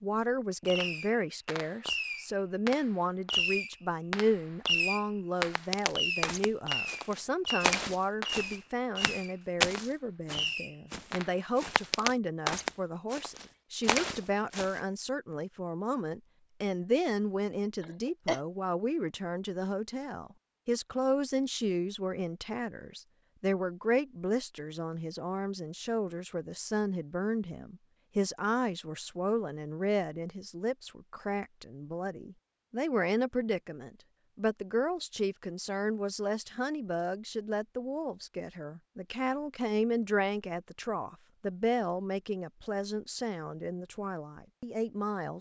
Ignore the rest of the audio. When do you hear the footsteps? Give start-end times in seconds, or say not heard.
5.4-14.8.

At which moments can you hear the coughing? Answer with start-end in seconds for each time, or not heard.
17.8-18.4.